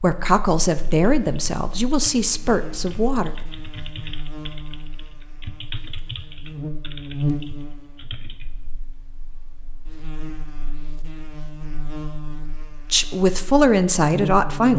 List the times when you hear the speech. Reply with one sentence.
The speech can be heard from 0.0 to 3.4 s and from 12.9 to 14.7 s.